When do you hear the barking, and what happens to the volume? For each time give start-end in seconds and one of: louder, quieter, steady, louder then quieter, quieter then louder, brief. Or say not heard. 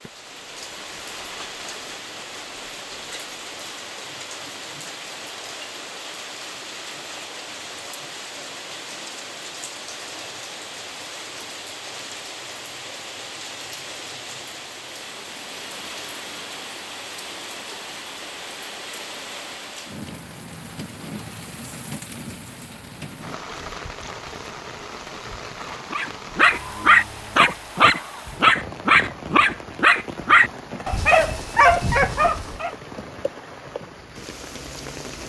25.9-32.7 steady.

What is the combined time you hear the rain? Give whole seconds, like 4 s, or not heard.
35 s.